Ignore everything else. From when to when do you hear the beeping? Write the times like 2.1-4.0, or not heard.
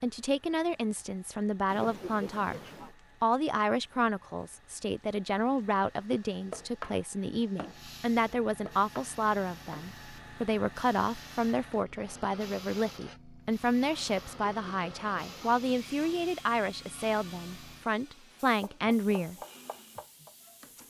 not heard.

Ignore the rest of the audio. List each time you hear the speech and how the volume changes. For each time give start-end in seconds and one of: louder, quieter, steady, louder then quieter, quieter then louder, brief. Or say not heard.
0.0-2.6 brief
3.2-19.4 steady.